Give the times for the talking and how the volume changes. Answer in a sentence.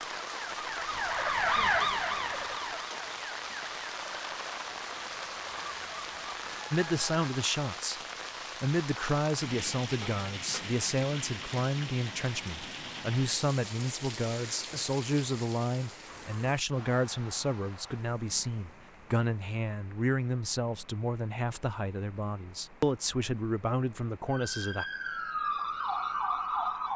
The talking can be heard from 6.7 to 24.9 s, at a steady volume.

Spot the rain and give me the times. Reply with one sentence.
You can hear the rain from 0.0 to 26.9 s.